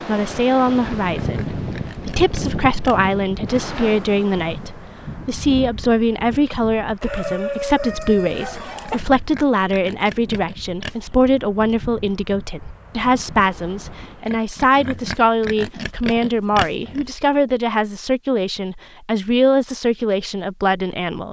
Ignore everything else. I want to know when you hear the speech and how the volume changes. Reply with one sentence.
The speech can be heard from 0.1 to 21.2 s, at a steady volume.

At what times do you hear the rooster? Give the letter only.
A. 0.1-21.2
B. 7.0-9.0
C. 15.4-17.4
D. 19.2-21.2
B.